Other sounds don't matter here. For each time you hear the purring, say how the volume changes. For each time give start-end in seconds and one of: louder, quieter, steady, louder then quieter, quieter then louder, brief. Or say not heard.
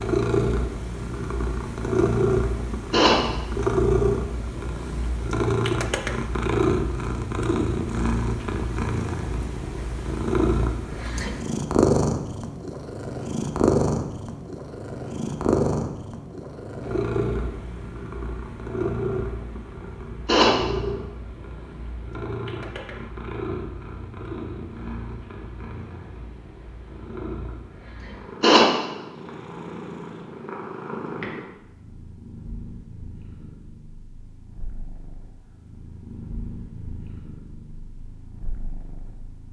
0.0-39.4 quieter.